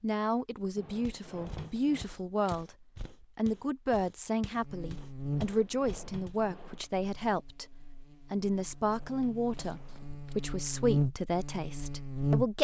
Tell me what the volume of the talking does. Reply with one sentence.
The loudness of the talking stays about the same.